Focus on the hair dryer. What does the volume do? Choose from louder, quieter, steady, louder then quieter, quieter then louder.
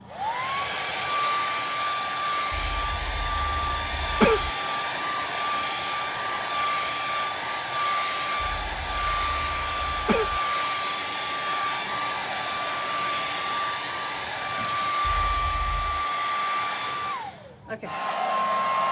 steady.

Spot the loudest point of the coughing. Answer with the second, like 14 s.
4 s.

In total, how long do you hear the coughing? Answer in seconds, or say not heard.
5 s.